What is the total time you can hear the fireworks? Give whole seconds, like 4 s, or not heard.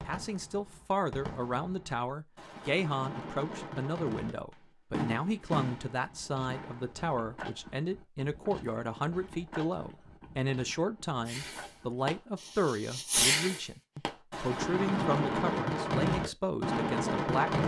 13 s.